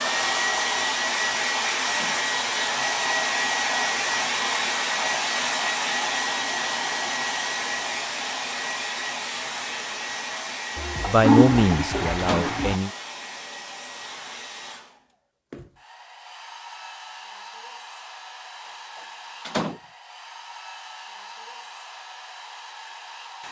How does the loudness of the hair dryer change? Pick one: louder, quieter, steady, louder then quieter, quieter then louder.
quieter.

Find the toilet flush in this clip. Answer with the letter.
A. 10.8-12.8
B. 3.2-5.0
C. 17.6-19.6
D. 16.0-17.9
A.